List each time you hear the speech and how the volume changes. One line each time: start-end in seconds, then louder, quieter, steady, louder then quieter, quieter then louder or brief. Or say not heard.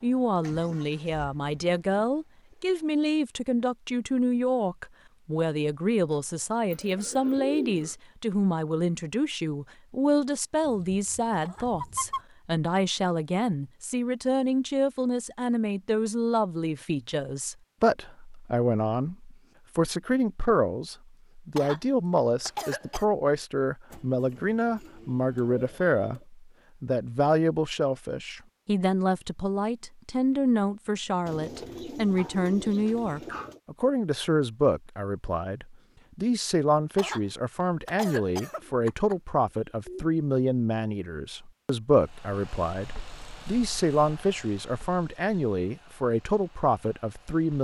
0.0-47.5 steady.